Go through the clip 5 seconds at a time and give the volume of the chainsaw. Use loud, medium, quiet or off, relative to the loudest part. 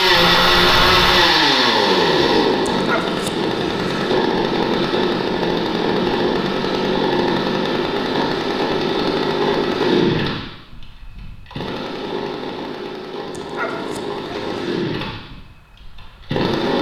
loud, loud, medium, medium.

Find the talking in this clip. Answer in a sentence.
You can't hear the talking here.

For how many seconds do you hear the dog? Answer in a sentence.
The dog can be heard for 3 seconds in total.